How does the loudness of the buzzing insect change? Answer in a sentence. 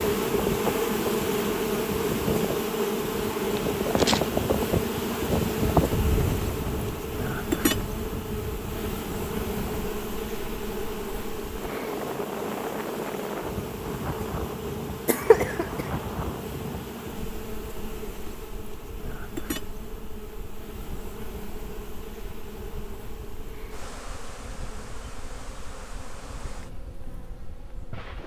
The loudness of the buzzing insect goes down.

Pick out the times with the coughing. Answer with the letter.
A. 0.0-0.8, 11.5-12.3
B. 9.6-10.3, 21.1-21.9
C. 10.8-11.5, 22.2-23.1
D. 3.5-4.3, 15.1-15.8
D.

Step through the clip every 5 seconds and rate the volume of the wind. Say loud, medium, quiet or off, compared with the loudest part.
loud, loud, medium, medium, quiet, quiet.